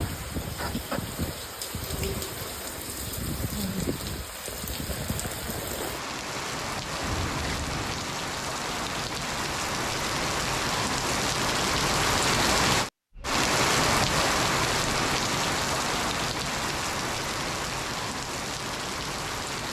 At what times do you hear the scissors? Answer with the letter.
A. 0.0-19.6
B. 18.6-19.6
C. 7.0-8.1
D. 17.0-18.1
C.